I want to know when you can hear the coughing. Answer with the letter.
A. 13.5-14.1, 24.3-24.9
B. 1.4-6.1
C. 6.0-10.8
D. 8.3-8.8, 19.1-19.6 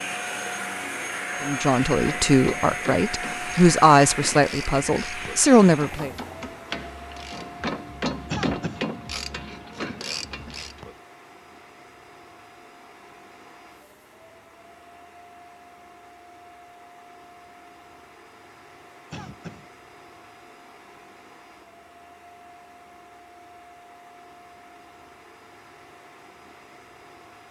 D.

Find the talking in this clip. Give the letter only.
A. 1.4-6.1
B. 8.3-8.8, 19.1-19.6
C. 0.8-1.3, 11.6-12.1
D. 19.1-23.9
A.